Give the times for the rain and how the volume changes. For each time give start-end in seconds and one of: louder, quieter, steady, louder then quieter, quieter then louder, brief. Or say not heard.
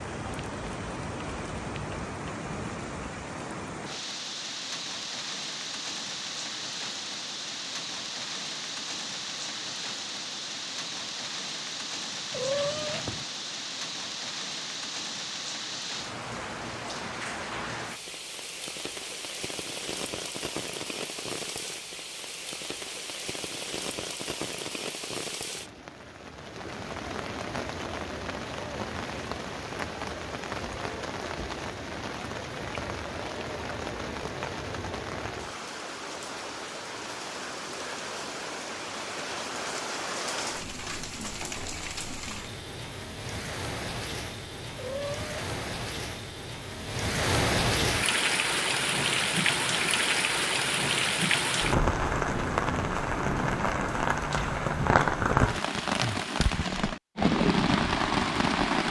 0.0-58.8 louder.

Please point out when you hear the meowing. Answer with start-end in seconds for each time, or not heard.
12.3-13.2, 44.8-45.5.